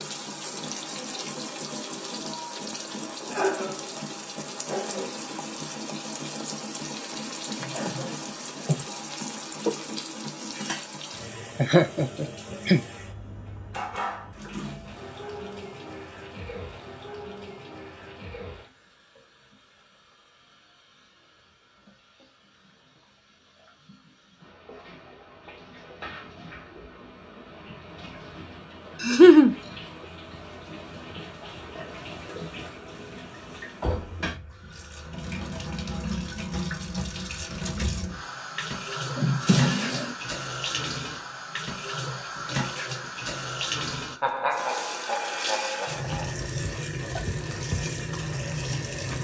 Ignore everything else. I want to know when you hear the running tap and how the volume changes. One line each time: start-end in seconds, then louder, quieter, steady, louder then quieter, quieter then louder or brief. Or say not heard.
0.0-49.1 quieter then louder.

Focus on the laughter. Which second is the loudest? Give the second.
29 s.